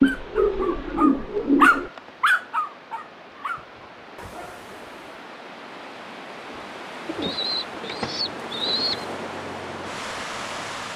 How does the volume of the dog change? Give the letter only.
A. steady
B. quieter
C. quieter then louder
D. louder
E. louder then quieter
E.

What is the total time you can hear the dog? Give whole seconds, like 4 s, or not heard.
5 s.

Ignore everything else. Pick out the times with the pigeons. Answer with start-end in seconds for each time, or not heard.
0.0-1.9, 7.0-9.1.